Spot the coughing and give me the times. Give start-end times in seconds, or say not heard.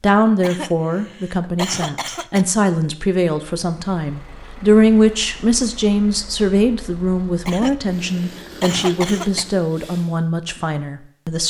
0.4-2.5, 7.5-9.4.